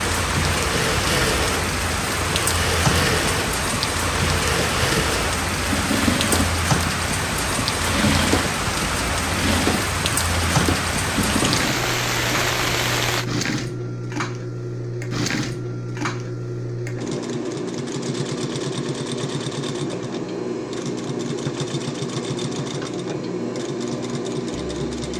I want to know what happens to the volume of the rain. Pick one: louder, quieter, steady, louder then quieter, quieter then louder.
steady.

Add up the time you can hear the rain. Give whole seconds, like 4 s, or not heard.
13 s.